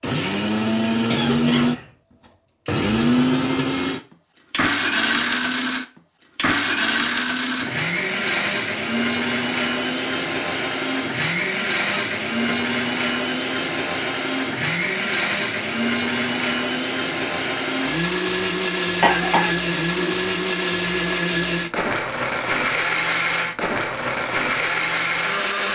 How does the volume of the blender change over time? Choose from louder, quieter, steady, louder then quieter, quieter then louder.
steady.